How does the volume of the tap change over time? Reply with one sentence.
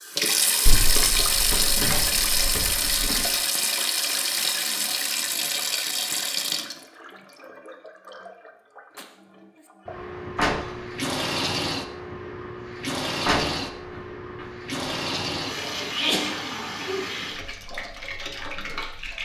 The volume of the tap goes down.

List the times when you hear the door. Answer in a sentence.
You can hear the door from 0.7 to 3.2 s, from 10.3 to 10.8 s and from 13.2 to 14.4 s.